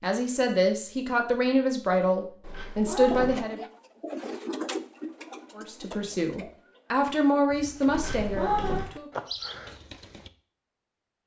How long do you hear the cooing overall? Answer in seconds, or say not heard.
7 s.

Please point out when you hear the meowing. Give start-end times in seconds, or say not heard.
2.4-3.5, 7.9-8.9.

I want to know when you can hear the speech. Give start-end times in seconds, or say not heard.
0.0-3.6, 5.5-9.1.